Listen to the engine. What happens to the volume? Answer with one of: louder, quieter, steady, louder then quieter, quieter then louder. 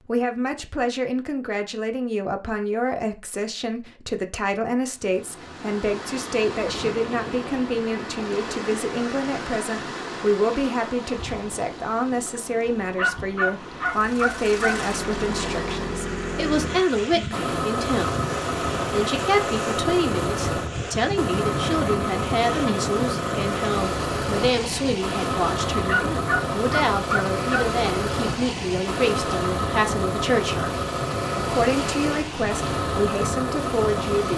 steady.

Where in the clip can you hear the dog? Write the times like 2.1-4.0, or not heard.
12.9-14.8, 25.9-27.6.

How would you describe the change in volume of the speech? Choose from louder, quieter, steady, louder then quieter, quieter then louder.
steady.